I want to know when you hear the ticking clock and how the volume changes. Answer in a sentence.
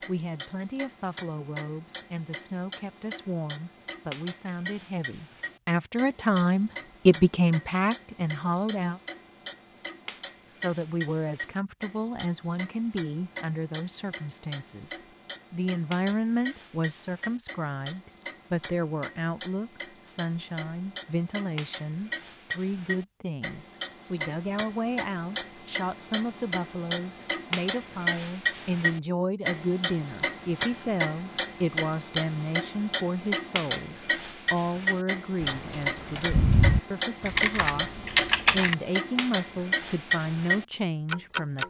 You can hear the ticking clock from 0.0 to 41.6 s, getting louder.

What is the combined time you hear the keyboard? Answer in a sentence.
The keyboard can be heard for 3 seconds in total.